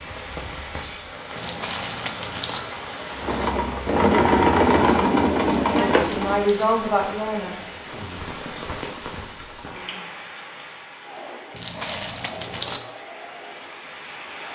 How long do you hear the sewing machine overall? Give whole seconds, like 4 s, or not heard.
7 s.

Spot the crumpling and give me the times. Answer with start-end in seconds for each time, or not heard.
1.4-2.6, 5.7-6.7, 11.5-12.8.